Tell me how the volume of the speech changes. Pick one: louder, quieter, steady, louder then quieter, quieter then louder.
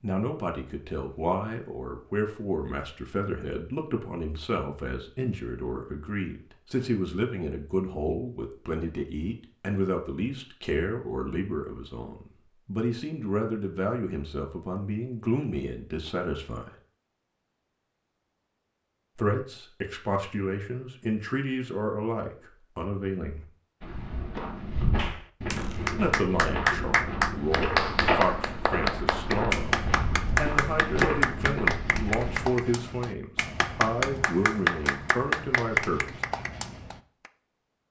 steady.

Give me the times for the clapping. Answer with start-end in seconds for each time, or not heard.
24.9-37.3.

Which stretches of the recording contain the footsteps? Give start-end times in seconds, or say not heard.
23.8-32.5.